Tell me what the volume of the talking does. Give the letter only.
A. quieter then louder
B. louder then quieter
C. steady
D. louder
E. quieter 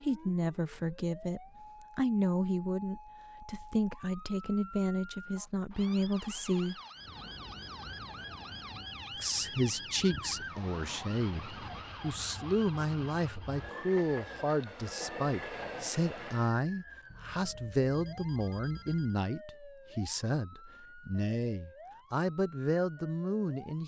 C.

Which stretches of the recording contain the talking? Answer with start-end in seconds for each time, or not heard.
0.0-6.8, 9.2-23.8.